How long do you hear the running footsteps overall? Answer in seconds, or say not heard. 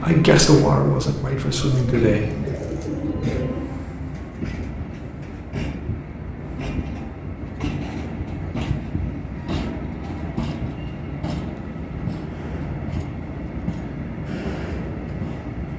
not heard.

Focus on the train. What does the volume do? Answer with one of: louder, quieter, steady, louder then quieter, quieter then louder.
steady.